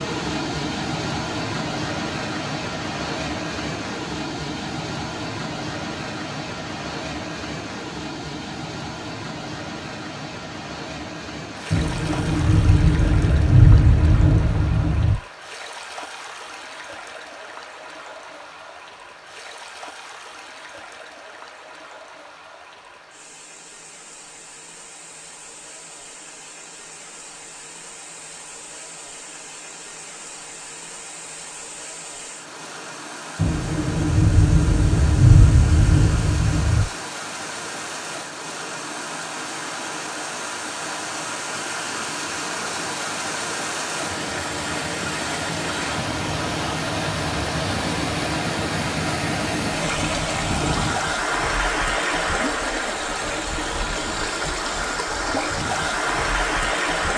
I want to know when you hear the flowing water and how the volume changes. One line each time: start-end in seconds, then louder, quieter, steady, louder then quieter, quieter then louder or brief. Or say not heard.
0.0-57.1 quieter then louder.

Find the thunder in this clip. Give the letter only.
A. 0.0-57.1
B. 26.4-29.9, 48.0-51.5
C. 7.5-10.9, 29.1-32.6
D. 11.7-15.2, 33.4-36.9
D.